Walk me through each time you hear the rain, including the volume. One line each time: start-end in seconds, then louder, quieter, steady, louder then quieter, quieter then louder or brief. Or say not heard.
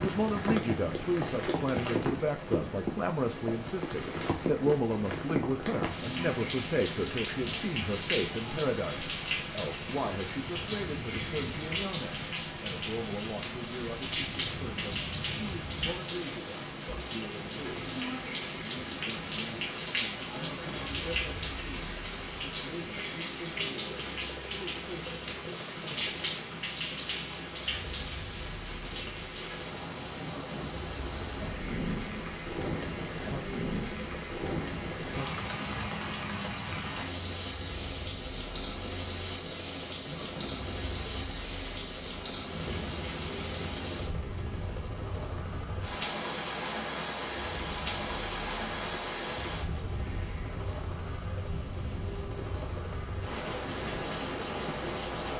0.0-55.3 steady.